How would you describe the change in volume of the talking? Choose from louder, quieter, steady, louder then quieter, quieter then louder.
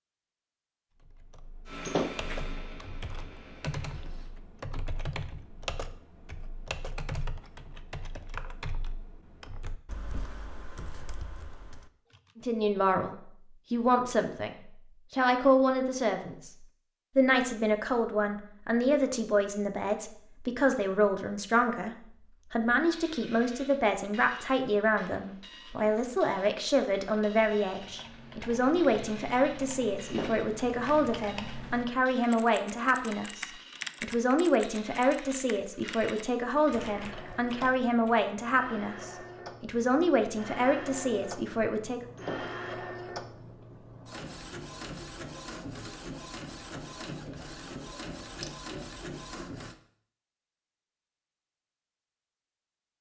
steady.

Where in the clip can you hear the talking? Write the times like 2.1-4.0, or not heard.
12.3-42.0.